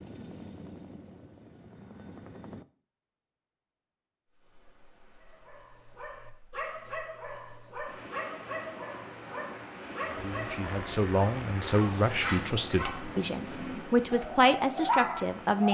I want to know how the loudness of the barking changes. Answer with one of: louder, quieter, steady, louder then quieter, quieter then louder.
louder.